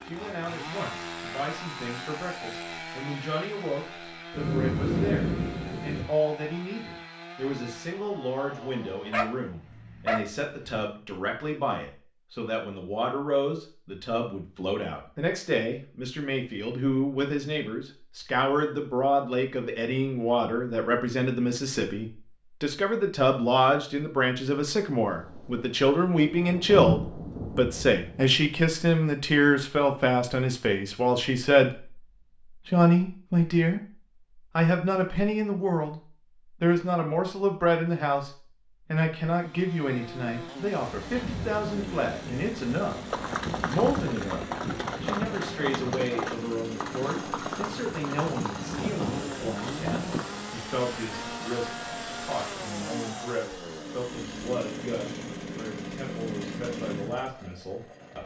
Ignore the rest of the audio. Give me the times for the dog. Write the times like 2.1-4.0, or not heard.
8.9-10.8.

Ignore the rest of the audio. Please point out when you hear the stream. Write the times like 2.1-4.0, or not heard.
not heard.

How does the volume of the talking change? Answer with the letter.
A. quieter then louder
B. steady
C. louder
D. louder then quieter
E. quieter
D.